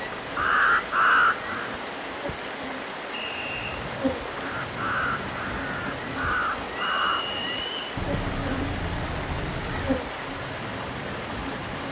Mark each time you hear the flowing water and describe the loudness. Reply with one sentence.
The flowing water can be heard from 0.0 to 11.8 s, at a steady volume.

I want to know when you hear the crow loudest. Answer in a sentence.
The volume of the crow peaks at 1 second.